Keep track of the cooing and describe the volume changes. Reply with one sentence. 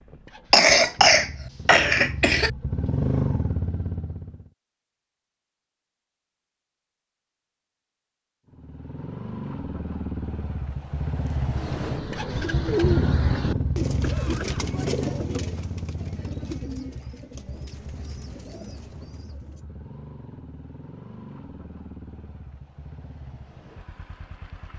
The loudness of the cooing goes down.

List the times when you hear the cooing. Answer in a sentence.
You can hear the cooing from 11.5 to 19.6 s.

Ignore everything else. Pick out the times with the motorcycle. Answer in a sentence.
The motorcycle can be heard from 0.0 to 4.5 s and from 8.4 to 24.7 s.